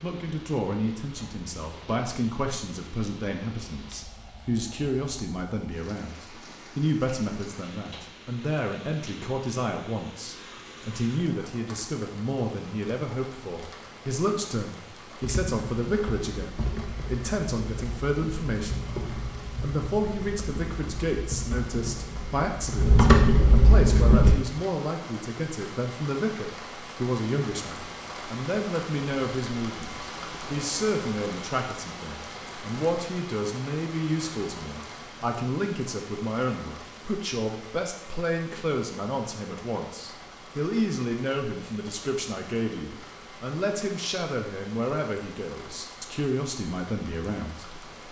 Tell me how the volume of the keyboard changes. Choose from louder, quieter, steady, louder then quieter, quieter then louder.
louder.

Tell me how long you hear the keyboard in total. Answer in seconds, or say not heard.
9 s.